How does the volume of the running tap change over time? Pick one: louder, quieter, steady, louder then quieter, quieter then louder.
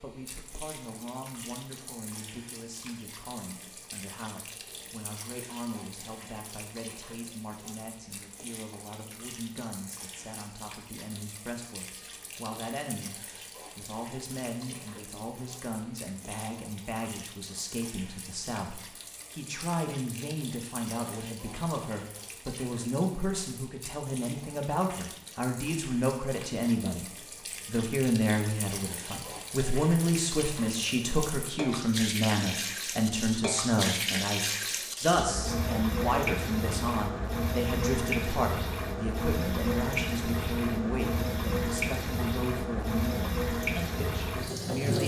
louder.